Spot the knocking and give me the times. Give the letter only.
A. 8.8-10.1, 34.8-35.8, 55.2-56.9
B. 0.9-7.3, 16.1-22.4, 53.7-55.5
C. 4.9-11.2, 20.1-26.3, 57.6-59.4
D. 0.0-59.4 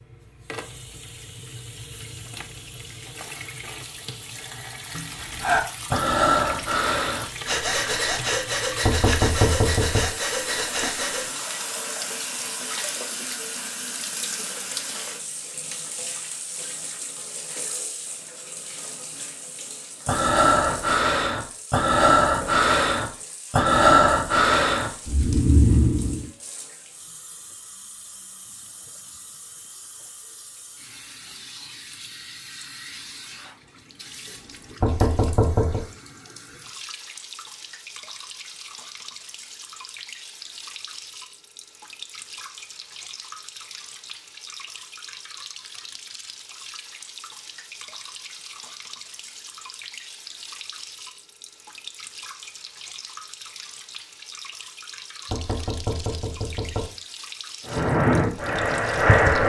A.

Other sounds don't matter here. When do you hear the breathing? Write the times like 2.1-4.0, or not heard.
4.9-11.2, 20.1-26.3, 57.6-59.4.